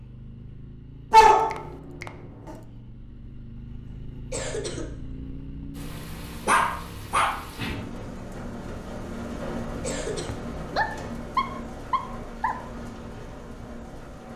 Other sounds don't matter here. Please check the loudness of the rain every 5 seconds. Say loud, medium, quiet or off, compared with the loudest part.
off, loud, loud.